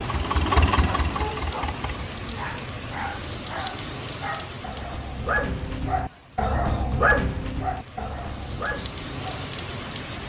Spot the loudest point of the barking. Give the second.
7 s.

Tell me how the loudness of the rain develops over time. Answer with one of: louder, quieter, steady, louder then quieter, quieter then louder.
quieter then louder.